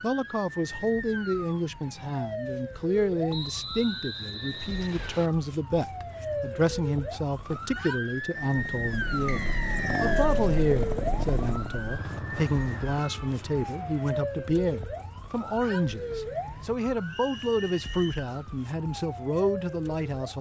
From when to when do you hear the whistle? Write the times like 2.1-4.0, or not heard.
3.3-5.3, 9.2-10.3, 17.1-18.3.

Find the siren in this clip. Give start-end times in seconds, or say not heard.
0.0-20.3.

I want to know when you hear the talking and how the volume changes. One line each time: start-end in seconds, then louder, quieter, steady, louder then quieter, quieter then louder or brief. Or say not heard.
0.0-20.3 steady.